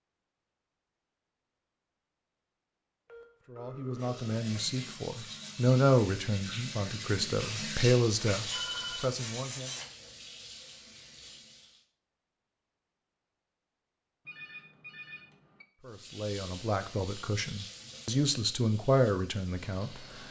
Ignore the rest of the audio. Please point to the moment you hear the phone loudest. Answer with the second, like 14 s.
9 s.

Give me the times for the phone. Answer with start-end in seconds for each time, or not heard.
3.0-4.7, 8.5-9.1, 14.2-15.7.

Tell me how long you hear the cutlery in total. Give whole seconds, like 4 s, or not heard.
2 s.